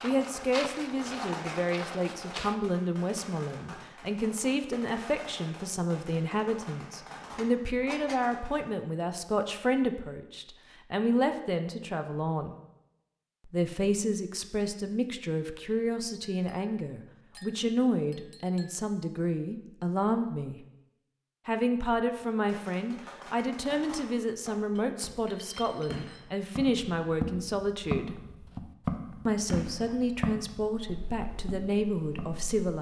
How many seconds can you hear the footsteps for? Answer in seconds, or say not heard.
9 s.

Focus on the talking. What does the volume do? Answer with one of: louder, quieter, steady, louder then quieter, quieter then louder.
steady.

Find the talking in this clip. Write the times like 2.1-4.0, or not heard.
0.0-12.6, 13.4-20.6, 21.4-28.1, 29.2-32.7.